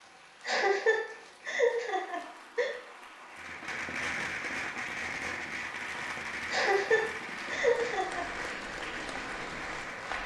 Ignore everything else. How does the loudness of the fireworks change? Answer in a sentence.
The volume of the fireworks goes down.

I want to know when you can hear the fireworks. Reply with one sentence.
You can hear the fireworks from 3.3 to 10.2 s.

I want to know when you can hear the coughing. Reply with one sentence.
The coughing can be heard from 0.5 to 2.7 s and from 6.5 to 8.2 s.